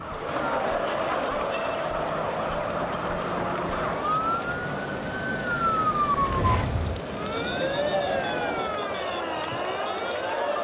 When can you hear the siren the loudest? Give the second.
6 s.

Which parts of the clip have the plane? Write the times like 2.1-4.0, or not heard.
0.0-8.8.